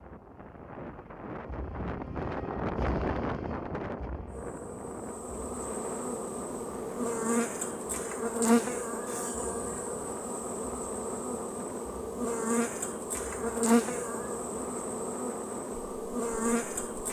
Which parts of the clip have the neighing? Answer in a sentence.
The neighing can't be heard in this clip.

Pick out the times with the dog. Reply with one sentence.
The dog can't be heard in this clip.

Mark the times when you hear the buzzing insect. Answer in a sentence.
You can hear the buzzing insect from 4.2 to 17.0 s.